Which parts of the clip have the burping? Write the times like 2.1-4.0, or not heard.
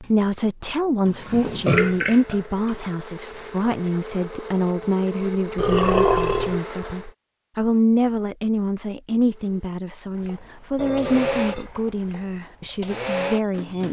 1.2-2.8, 5.5-6.6, 10.8-11.8.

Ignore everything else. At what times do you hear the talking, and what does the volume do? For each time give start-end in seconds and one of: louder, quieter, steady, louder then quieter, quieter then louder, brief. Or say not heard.
0.0-13.8 steady.